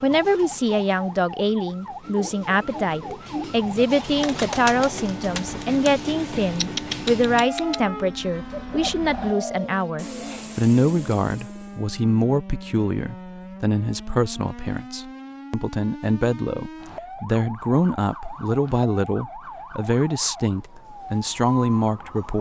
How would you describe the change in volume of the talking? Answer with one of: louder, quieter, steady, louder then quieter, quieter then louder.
steady.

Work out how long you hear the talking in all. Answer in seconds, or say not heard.
22 s.